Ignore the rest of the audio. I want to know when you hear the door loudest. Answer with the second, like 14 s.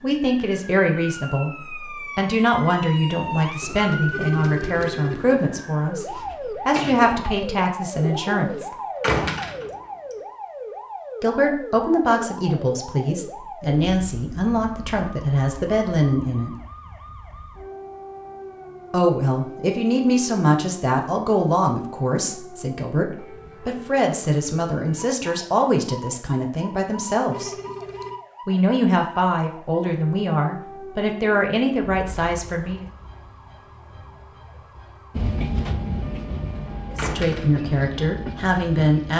9 s.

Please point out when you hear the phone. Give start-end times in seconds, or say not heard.
4.1-5.3, 27.3-28.2.